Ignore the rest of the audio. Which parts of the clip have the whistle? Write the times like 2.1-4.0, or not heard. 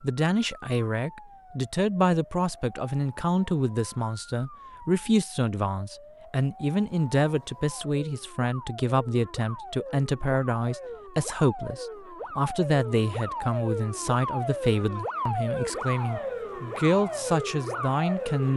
not heard.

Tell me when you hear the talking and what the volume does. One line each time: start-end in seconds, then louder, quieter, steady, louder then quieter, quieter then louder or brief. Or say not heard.
0.0-18.5 steady.